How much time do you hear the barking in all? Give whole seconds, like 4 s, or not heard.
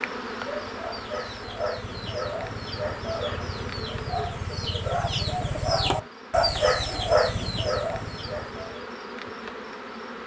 not heard.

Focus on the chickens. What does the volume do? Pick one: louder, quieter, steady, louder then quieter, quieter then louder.
louder.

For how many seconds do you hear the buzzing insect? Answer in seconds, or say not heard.
10 s.